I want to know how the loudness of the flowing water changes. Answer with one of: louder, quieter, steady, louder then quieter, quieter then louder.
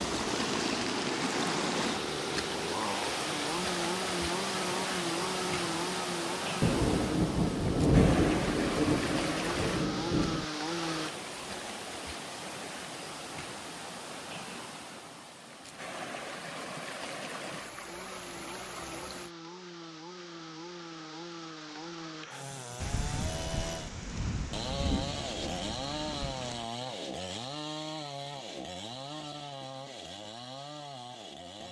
quieter.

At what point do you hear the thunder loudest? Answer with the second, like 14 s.
8 s.